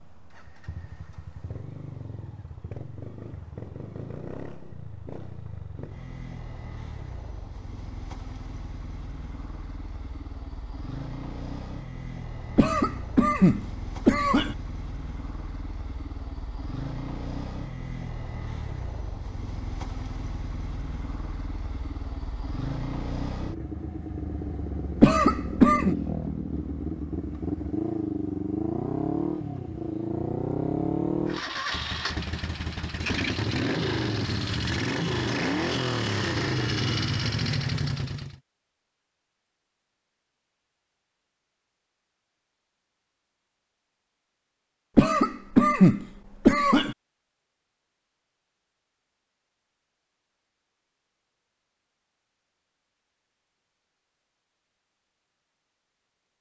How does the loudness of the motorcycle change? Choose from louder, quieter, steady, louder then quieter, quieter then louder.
louder.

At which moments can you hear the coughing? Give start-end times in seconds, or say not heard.
12.6-14.6, 25.0-25.9, 45.0-47.0.